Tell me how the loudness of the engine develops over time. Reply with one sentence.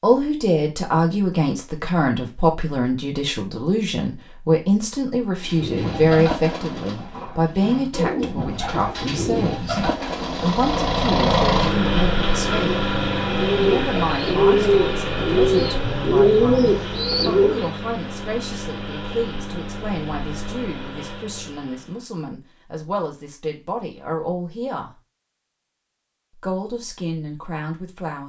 The loudness of the engine goes down.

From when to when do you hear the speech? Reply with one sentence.
You can hear the speech from 0.0 to 12.8 s, from 13.6 to 24.9 s and from 26.4 to 28.2 s.